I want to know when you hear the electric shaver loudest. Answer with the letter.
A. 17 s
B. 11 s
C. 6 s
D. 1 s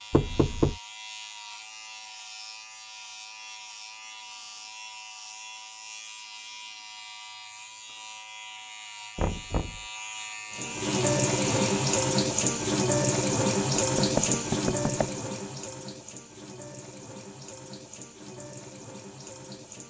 B.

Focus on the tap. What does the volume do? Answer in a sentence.
The loudness of the tap goes down.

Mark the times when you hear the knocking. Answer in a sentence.
The knocking can be heard from 0.1 to 0.8 s, from 9.2 to 9.8 s and from 13.8 to 15.1 s.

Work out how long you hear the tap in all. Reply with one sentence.
The tap can be heard for 9 seconds in total.